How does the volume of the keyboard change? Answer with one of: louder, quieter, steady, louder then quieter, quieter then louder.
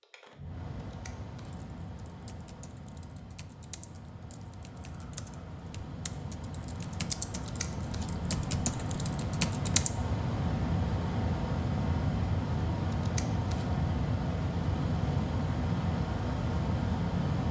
louder.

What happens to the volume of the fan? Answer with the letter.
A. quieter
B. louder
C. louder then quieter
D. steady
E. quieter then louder
B.